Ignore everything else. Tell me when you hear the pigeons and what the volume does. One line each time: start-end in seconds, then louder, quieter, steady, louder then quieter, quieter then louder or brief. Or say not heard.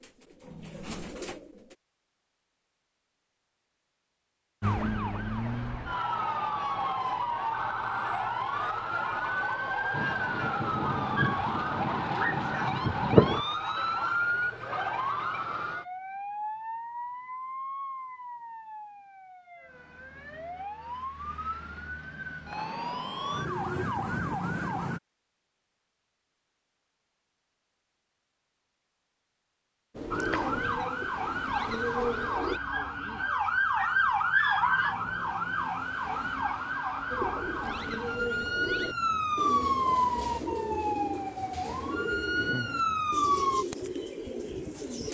0.0-1.8 brief
29.9-32.6 brief
37.1-45.1 steady.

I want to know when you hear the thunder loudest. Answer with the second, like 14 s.
13 s.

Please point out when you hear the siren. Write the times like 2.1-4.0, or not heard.
4.6-25.0, 30.1-43.6.